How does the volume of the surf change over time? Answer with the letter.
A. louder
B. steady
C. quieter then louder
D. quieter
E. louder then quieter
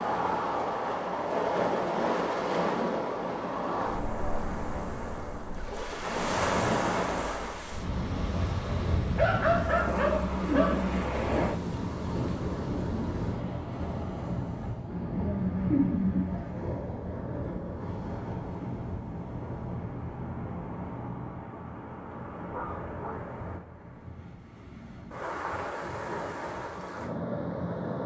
D.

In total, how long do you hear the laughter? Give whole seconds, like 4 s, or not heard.
3 s.